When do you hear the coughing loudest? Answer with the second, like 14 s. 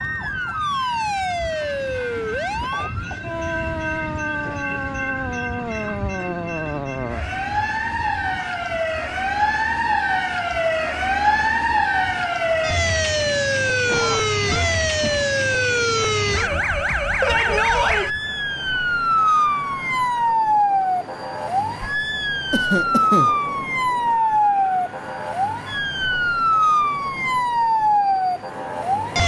23 s.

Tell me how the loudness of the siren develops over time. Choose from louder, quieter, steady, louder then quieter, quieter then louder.
louder.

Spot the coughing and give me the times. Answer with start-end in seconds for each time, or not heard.
2.5-3.4, 13.8-15.3, 22.5-23.3.